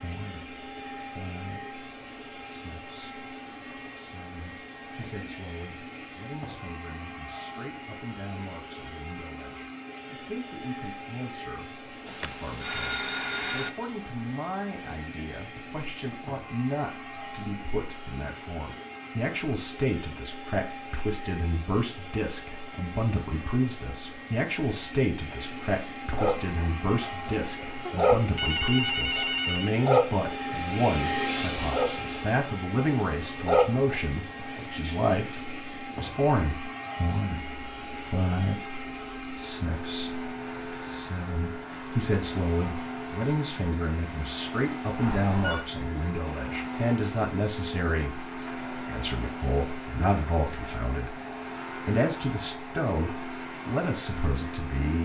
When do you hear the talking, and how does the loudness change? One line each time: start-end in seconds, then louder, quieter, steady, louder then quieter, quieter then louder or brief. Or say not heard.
0.0-54.9 louder.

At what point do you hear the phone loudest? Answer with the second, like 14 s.
29 s.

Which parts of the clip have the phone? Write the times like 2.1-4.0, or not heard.
12.1-13.7, 27.9-29.8, 45.0-45.6.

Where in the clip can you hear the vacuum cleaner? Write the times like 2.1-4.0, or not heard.
0.0-54.9.